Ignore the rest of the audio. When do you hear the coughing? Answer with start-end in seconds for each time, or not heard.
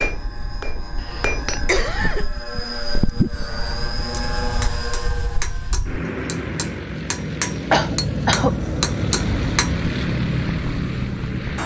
1.0-2.2, 7.7-8.6.